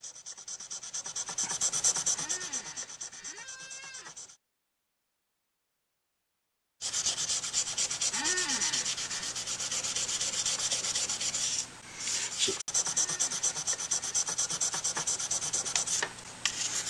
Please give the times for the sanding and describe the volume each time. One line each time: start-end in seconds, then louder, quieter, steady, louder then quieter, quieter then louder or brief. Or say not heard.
0.0-4.4 louder then quieter
6.8-16.8 steady.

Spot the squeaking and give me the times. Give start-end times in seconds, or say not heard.
2.1-4.1, 8.1-9.3, 12.8-14.2.